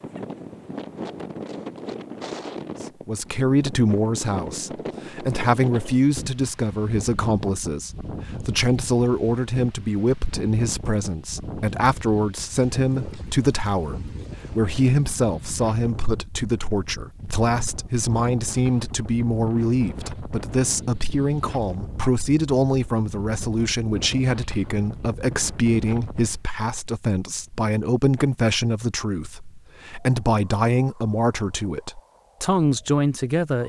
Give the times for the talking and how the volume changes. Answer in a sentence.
The talking can be heard from 2.8 to 33.6 s, at a steady volume.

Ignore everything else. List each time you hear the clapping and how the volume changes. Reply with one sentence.
You can't hear the clapping here.